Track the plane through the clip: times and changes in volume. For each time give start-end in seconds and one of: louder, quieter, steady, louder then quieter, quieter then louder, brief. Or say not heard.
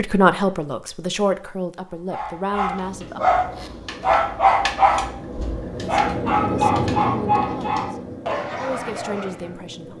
2.6-9.9 louder then quieter.